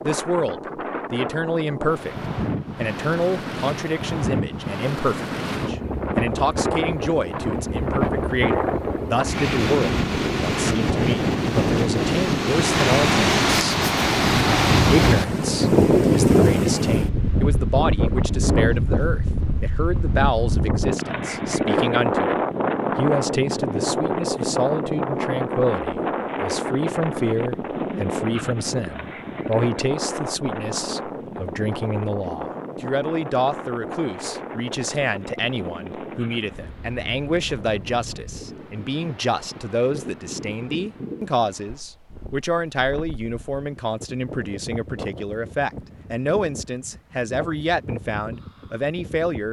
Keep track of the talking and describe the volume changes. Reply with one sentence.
The volume of the talking stays about the same.